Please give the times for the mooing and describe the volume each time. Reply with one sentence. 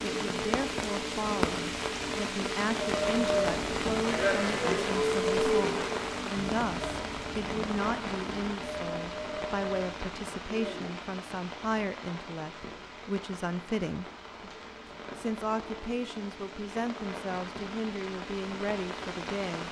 You can hear the mooing from 2.8 to 10.9 s, getting quieter.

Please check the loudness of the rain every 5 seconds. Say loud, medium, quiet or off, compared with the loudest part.
loud, loud, medium, medium.